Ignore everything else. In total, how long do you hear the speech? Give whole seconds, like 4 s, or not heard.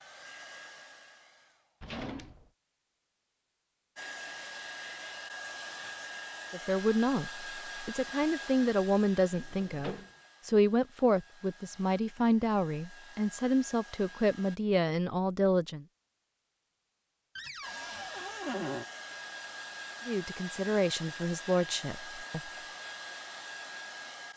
12 s.